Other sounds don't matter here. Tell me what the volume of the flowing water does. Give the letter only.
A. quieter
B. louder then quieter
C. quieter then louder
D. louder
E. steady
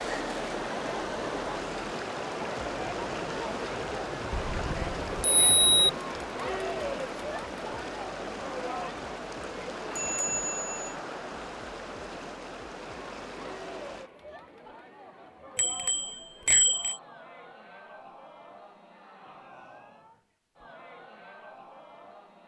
A.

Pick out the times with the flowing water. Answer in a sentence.
The flowing water can be heard from 0.0 to 14.1 s.